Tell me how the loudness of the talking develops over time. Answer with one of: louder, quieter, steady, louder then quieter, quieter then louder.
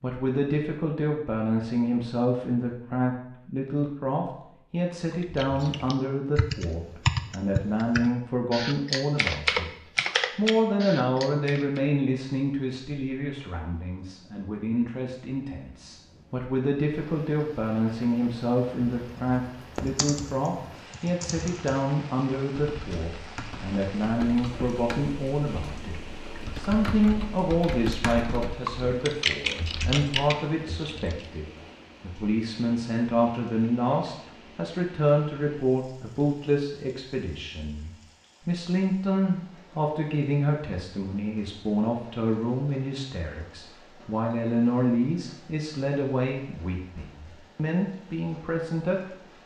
steady.